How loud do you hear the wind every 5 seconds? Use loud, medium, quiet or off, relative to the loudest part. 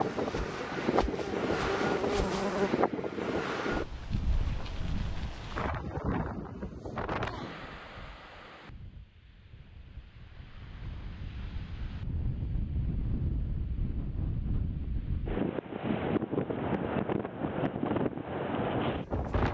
loud, medium, medium, loud.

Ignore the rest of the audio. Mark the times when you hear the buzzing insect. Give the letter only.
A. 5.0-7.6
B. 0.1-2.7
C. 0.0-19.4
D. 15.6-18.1
B.